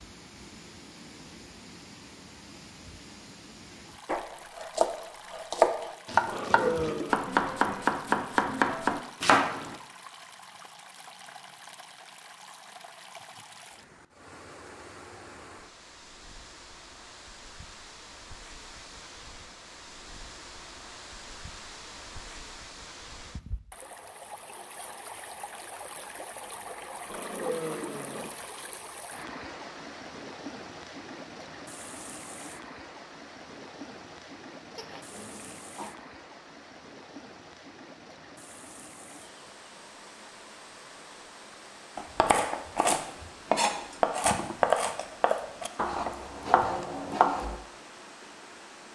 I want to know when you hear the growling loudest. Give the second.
7 s.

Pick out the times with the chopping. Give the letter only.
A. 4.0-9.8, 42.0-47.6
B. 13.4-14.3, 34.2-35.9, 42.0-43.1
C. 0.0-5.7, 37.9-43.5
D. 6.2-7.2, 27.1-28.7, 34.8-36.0
A.